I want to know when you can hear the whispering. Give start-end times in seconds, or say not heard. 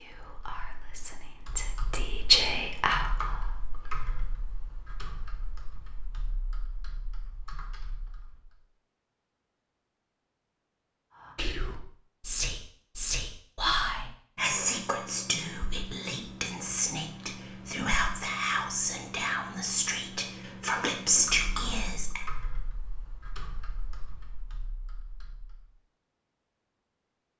0.0-3.6, 11.3-22.2.